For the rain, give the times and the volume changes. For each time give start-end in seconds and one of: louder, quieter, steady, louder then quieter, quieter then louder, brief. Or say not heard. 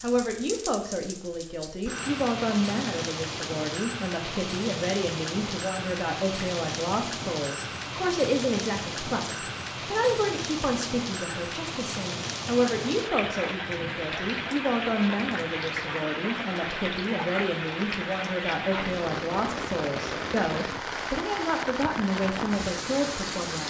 0.0-23.6 steady.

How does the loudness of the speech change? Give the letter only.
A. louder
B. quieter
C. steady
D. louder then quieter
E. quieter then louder
C.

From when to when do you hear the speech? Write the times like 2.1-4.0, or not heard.
0.0-23.6.